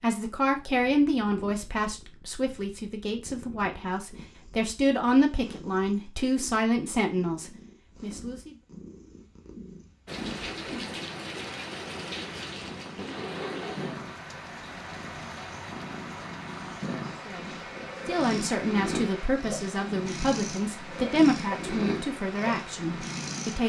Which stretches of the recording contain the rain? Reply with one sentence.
You can hear the rain from 10.1 to 23.6 s.